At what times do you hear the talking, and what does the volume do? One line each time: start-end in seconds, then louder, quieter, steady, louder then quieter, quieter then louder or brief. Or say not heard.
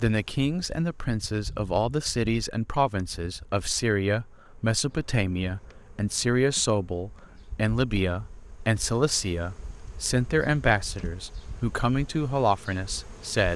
0.0-13.5 steady.